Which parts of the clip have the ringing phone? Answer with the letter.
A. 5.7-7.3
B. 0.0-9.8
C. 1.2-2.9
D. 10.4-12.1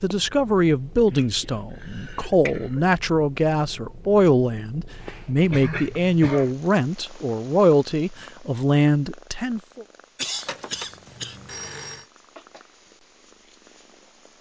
D.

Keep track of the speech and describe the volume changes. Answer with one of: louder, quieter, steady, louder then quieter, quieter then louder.
steady.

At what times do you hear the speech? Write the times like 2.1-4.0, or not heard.
0.0-9.8.